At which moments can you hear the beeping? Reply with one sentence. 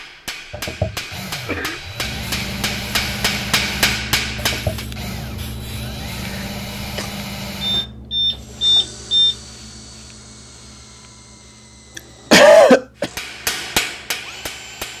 The beeping can be heard from 7.6 to 9.3 s.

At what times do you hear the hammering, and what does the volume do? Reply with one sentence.
You can hear the hammering from 0.0 to 4.8 s, getting louder; and briefly from 12.9 to 14.9 s.